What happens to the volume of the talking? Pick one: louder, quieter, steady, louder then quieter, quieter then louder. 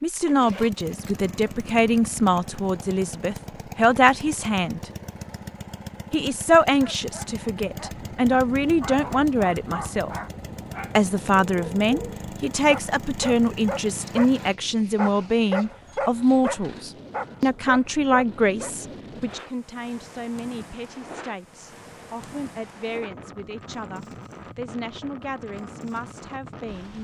quieter.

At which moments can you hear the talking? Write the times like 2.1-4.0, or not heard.
0.0-4.9, 6.1-10.2, 10.9-26.9.